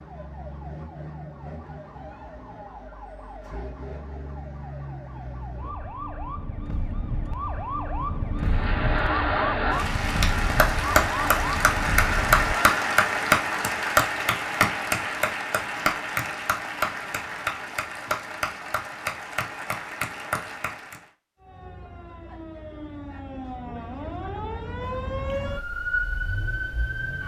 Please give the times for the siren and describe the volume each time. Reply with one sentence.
The siren can be heard from 0.0 to 12.8 s, getting louder; and from 21.4 to 27.2 s, getting louder.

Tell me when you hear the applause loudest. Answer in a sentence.
The loudest moment of the applause is at 13 seconds.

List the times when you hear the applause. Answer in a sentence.
You can hear the applause from 8.4 to 21.1 s.